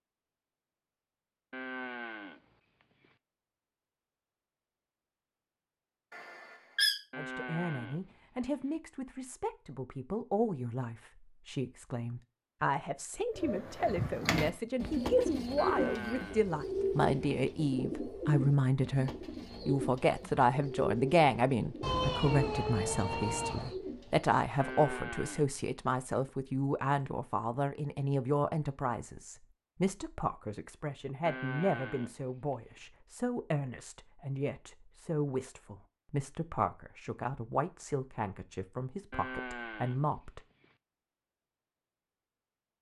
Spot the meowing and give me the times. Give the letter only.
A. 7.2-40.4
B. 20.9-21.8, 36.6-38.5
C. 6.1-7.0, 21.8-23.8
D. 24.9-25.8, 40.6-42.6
C.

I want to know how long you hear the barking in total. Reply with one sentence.
You can't hear the barking here.